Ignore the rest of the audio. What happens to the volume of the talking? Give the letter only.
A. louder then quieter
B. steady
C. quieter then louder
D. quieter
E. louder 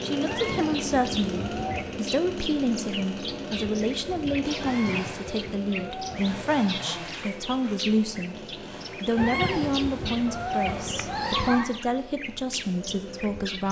B.